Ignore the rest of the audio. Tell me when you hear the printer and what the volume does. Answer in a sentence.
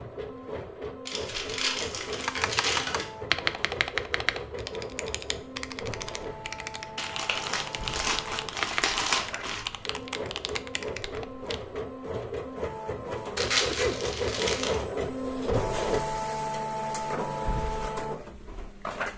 You can hear the printer from 0.0 to 19.1 s, getting louder.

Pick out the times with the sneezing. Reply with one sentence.
The sneezing can be heard from 13.7 to 14.1 s.